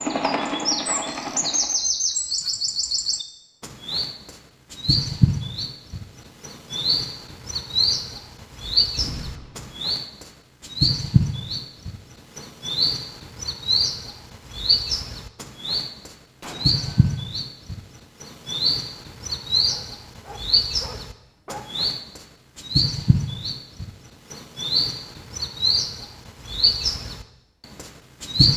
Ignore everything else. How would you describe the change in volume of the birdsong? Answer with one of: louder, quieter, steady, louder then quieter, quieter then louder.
steady.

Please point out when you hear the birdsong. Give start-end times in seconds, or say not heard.
0.0-28.5.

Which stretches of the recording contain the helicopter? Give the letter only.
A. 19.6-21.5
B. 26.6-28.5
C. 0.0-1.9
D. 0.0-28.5
C.